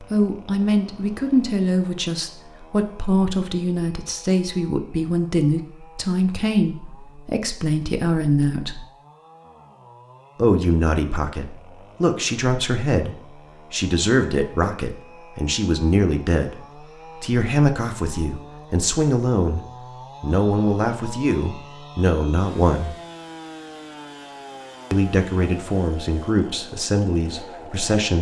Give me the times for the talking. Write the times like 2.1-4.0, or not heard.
0.0-8.8, 10.3-16.6, 17.2-19.6, 20.2-22.9, 24.9-28.1.